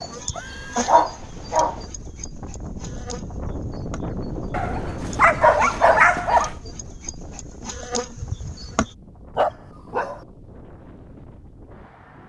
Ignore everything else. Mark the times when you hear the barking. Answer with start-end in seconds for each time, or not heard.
0.8-1.8, 4.5-6.5, 9.3-10.2.